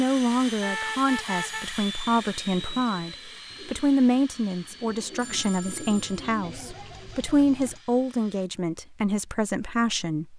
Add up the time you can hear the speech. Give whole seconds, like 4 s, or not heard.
10 s.